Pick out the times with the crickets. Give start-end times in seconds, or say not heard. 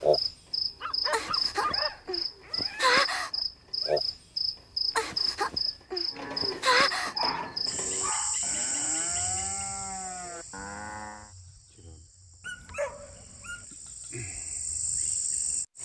0.0-15.8.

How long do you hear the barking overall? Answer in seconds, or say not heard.
4 s.